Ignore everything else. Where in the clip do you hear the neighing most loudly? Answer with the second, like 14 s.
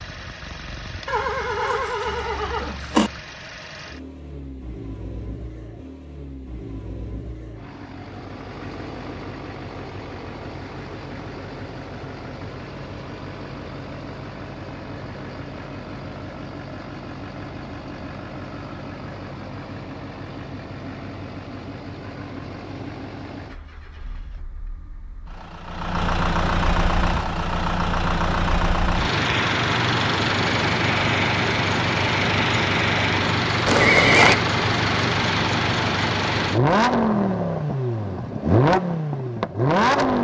34 s.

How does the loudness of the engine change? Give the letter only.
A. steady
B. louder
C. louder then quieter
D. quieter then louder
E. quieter
B.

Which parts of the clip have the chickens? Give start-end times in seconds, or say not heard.
not heard.